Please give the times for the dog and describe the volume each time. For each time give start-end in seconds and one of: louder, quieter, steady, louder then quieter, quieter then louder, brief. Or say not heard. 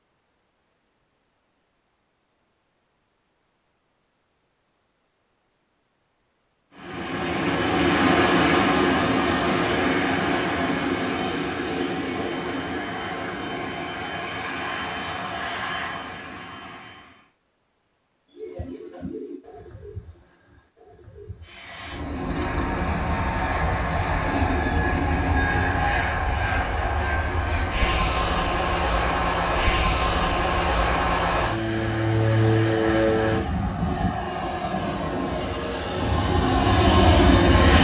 not heard.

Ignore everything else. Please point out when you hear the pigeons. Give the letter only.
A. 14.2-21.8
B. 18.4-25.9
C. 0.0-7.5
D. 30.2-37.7
B.